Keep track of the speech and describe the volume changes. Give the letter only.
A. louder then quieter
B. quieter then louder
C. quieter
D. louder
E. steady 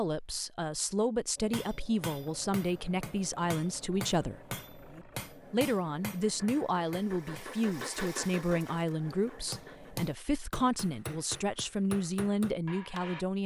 E.